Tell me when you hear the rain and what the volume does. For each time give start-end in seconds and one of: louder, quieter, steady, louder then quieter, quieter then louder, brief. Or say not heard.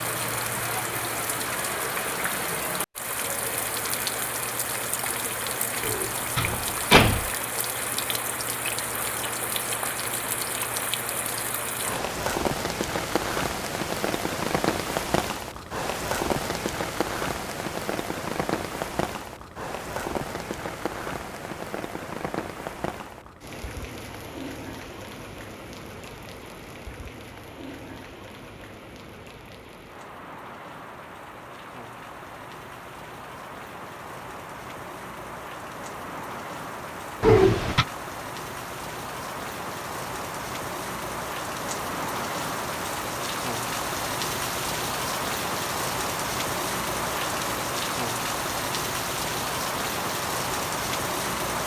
0.0-51.6 quieter then louder.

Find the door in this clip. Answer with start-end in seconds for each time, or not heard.
5.8-7.3, 37.2-37.9.